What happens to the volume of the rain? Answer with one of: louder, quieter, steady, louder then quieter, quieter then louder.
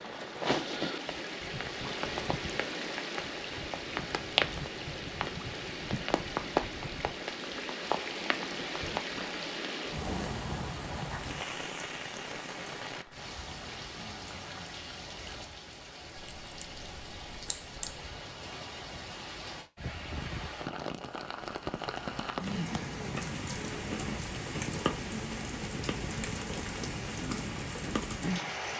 quieter then louder.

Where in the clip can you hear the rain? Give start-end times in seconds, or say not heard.
0.0-28.7.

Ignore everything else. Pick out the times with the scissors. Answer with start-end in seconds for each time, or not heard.
16.1-18.0.